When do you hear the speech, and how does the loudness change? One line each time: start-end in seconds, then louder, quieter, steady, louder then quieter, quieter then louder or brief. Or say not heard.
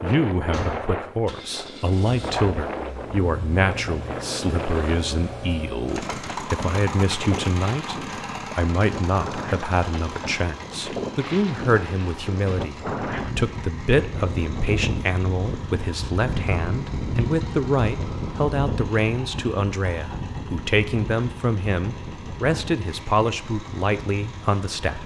0.0-25.0 steady.